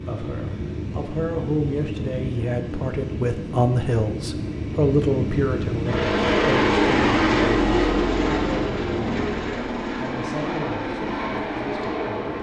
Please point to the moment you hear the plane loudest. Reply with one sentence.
The volume of the plane peaks at 7 seconds.